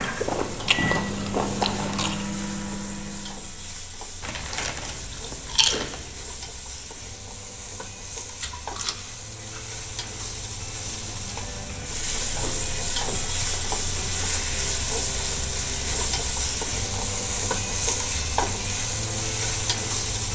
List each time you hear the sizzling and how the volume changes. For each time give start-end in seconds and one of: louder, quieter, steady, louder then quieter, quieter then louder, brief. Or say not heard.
0.0-20.2 louder.